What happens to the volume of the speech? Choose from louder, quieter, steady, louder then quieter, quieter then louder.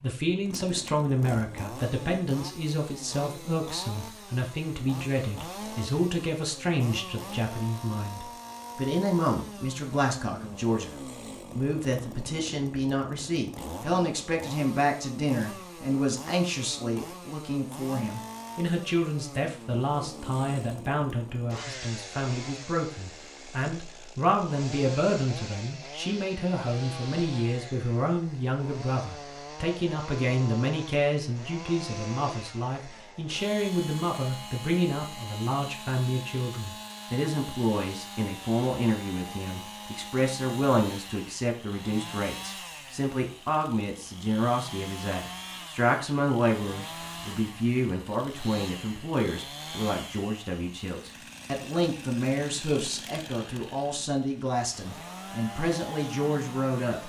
steady.